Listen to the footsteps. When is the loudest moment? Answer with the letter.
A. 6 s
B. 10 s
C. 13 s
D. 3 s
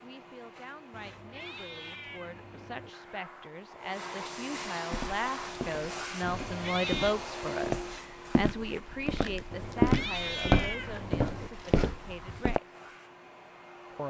B.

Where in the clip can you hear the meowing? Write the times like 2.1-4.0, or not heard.
0.9-2.9, 6.2-7.2, 9.5-11.5.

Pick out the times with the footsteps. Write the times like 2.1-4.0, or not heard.
4.9-12.6.